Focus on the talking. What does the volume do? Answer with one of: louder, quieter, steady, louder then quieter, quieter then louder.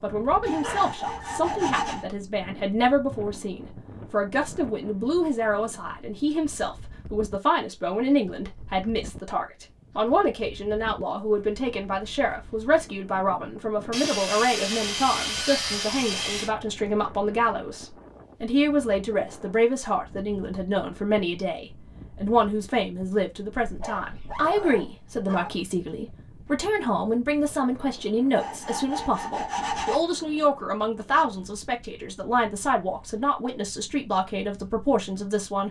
steady.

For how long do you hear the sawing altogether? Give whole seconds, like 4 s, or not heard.
6 s.